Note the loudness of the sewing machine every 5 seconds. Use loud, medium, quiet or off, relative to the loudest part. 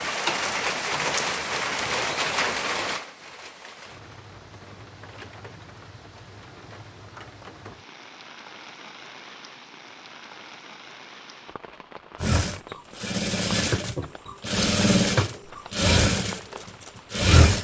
off, off, loud, loud.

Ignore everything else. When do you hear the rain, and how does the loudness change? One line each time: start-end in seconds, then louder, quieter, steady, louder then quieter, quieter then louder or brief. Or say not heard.
0.0-17.3 quieter.